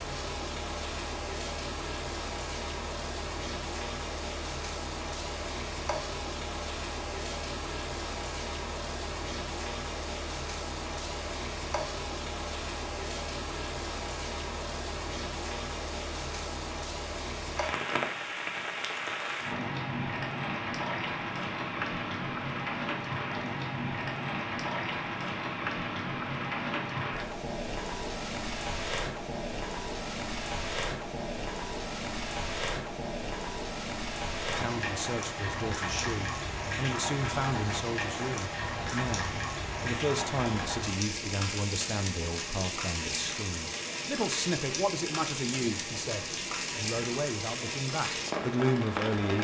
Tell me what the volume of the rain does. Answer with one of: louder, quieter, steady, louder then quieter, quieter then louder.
steady.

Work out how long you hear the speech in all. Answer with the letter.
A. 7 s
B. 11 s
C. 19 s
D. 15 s
D.